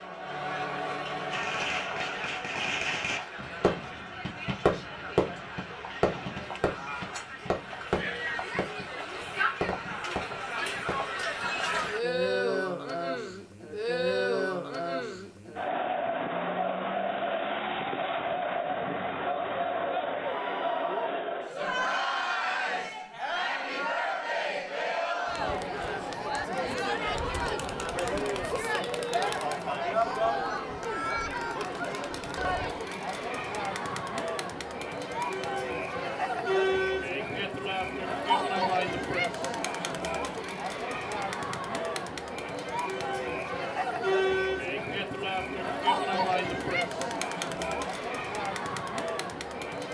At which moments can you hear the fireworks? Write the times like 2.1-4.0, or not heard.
1.3-11.5.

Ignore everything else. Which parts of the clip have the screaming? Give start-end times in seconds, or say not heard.
20.2-21.1.